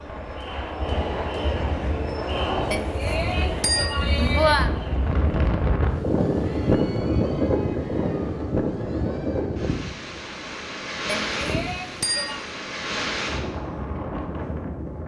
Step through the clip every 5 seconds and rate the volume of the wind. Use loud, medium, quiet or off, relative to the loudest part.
medium, loud, medium.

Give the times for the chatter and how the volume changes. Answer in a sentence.
The chatter can be heard from 0.0 to 9.7 s, getting quieter.